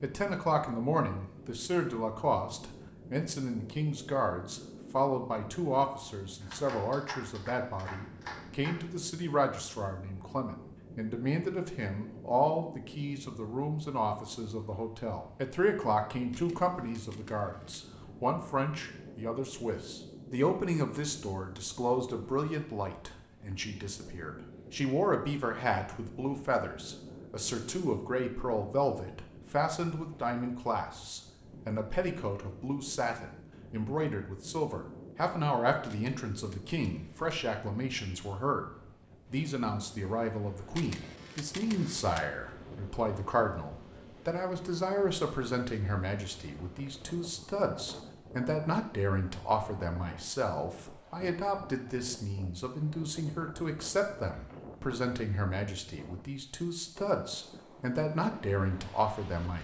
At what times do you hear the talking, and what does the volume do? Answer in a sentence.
The talking can be heard from 0.0 to 38.7 s, at a steady volume; and from 39.3 to 59.5 s, at a steady volume.